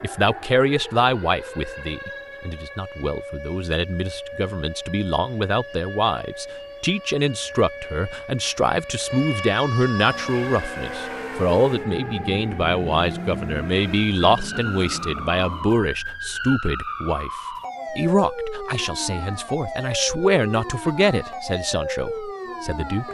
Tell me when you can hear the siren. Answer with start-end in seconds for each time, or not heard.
0.0-23.0.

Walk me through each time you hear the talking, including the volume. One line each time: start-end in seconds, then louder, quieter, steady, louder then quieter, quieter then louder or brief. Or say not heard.
0.0-17.3 steady
17.9-23.0 louder then quieter.